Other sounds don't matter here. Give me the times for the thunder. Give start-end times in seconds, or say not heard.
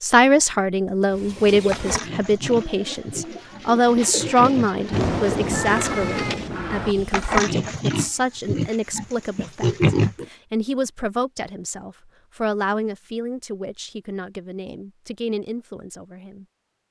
4.9-7.0.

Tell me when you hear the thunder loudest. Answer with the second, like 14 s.
5 s.